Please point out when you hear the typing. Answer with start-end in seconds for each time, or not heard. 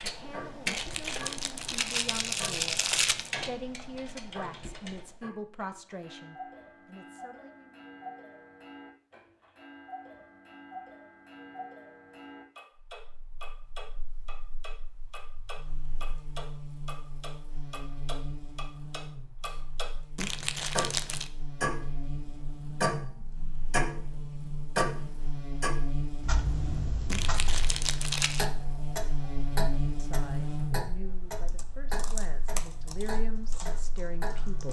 0.0-5.2, 31.4-34.6.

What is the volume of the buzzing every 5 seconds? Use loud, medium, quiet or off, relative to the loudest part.
off, off, quiet, medium, medium, loud, loud.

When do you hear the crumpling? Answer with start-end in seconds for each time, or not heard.
0.7-3.3, 20.1-21.3, 27.1-28.4.